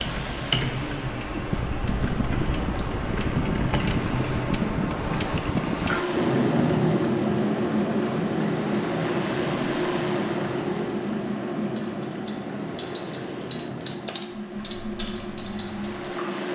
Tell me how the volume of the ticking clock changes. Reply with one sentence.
The volume of the ticking clock goes up, then down.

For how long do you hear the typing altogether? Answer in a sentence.
You can hear the typing for 9 seconds altogether.